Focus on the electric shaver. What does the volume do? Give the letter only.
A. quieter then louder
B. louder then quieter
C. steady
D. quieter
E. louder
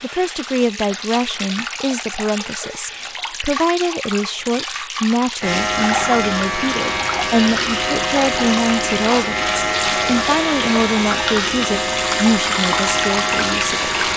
C.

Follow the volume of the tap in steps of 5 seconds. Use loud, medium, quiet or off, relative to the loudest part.
medium, loud, loud.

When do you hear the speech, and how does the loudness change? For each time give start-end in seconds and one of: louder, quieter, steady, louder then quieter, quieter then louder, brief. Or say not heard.
0.0-14.1 steady.